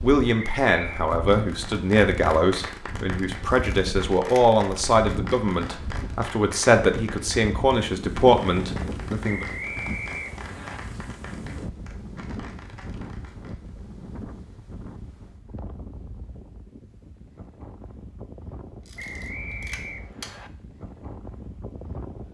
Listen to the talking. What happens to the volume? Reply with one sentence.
The loudness of the talking stays about the same.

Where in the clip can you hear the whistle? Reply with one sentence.
You can hear the whistle from 0.3 to 1.1 s, from 9.2 to 10.8 s and from 18.9 to 20.5 s.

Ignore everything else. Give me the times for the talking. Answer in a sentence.
The talking can be heard from 0.0 to 9.4 s.